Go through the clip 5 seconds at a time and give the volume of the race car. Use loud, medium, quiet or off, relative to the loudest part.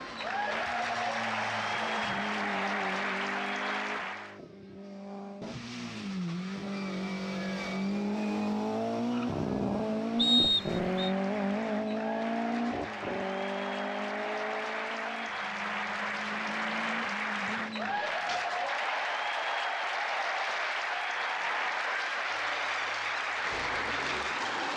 medium, loud, loud, medium, medium.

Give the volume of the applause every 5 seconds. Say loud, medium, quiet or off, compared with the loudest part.
loud, off, medium, loud, loud.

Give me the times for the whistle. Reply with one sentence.
You can hear the whistle from 10.2 to 11.1 s.